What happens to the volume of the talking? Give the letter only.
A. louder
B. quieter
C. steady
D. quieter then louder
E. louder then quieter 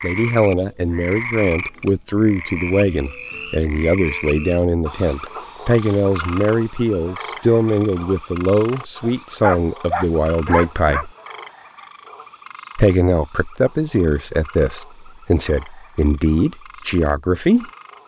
C.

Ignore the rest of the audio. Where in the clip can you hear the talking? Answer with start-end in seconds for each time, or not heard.
0.0-11.1, 12.8-17.7.